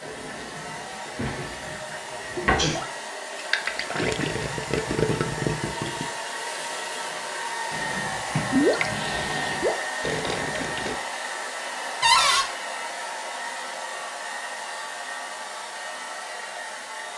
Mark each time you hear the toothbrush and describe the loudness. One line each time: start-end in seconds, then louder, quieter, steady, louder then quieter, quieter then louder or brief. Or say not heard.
not heard.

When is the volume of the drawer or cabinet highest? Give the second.
12 s.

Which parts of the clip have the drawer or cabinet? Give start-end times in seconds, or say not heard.
1.1-2.7, 7.7-9.7, 12.0-12.4.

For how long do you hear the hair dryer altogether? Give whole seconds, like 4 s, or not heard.
17 s.